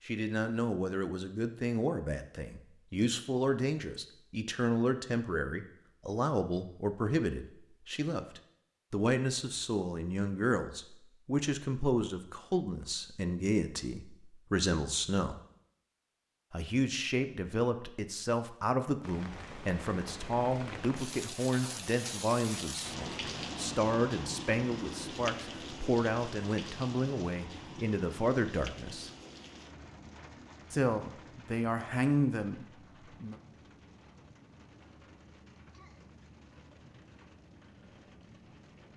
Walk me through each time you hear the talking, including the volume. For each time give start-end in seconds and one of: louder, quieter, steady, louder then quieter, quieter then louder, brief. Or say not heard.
0.1-15.4 steady
16.5-29.1 steady
30.7-33.4 brief.